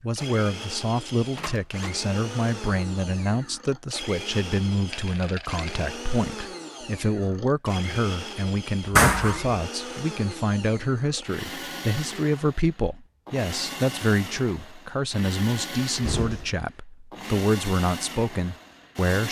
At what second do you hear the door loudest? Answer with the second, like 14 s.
9 s.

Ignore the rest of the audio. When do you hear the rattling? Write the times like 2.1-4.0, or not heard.
4.9-6.0.